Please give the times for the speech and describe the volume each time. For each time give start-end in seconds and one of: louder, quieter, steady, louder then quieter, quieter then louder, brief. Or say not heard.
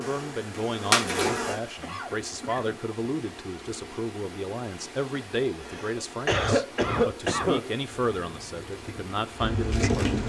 0.0-10.2 steady.